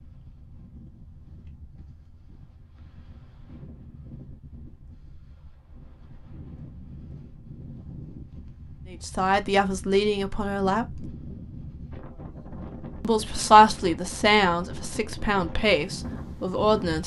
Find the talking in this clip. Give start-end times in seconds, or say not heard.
8.9-11.1, 13.0-17.0.